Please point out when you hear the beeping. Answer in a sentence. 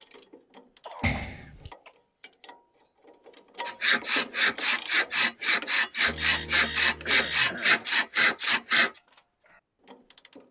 The beeping can be heard from 1.0 to 1.7 s and from 6.0 to 7.7 s.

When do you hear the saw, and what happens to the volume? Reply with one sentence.
You can hear the saw from 3.6 to 8.9 s, at a steady volume.